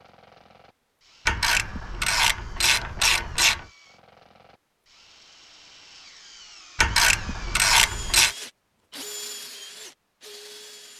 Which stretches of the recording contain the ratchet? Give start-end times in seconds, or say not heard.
1.2-3.6, 6.8-8.3.